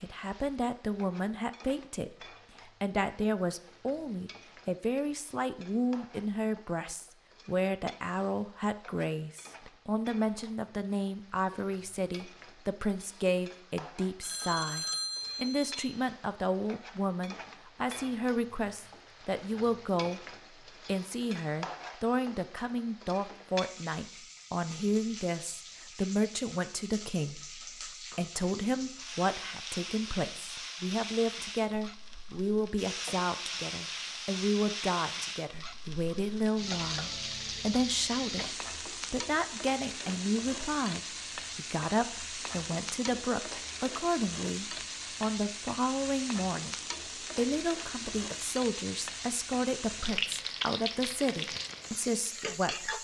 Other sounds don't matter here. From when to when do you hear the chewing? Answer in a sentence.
The chewing can't be heard in this clip.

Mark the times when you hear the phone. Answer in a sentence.
The phone can be heard from 14.2 to 16.0 s.